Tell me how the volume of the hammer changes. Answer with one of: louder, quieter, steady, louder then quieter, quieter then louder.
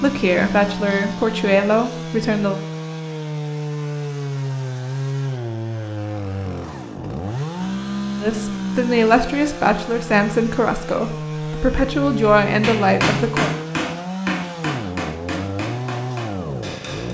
quieter.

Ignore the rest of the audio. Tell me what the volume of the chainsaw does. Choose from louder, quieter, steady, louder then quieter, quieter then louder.
steady.